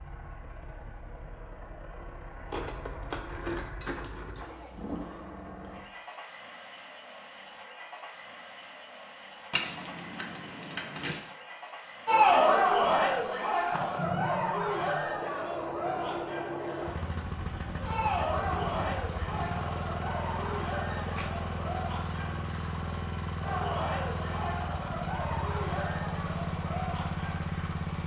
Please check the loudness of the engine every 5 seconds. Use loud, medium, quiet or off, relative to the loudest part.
medium, medium, medium, loud, loud, loud.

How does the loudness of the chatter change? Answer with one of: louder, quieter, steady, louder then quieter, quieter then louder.
quieter.